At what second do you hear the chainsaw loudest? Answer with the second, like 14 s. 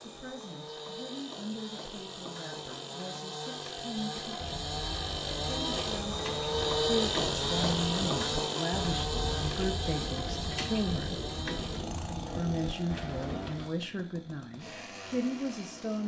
7 s.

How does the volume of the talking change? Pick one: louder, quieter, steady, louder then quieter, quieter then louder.
louder.